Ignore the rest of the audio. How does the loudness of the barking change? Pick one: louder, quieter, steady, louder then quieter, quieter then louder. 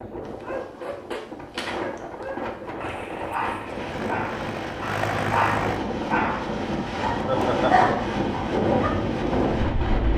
louder.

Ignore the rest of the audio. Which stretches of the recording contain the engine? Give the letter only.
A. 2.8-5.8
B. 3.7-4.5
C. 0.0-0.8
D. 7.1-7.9
A.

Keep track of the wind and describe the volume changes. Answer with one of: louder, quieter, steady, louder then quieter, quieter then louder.
louder.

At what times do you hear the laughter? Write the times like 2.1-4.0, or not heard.
7.1-7.9.